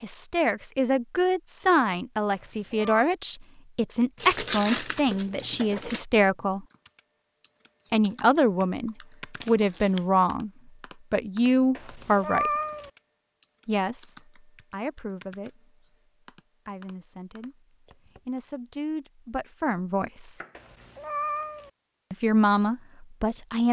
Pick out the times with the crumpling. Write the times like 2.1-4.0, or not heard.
4.2-6.0, 9.4-10.1, 20.3-21.5.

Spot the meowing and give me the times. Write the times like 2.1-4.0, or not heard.
2.2-3.0, 11.8-12.9, 20.6-21.7.